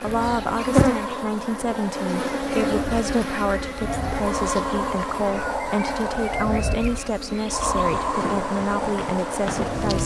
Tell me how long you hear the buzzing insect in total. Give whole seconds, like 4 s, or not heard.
10 s.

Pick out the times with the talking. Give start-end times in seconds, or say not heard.
0.0-10.0.